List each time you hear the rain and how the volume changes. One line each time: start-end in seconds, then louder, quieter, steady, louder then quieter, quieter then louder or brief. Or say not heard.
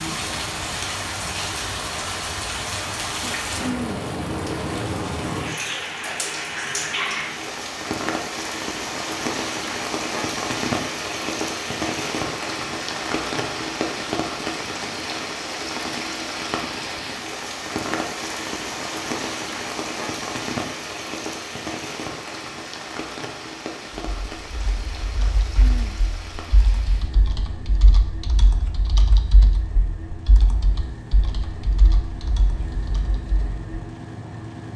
0.0-34.7 quieter.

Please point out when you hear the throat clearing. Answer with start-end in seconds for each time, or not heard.
3.2-4.0, 25.1-26.0.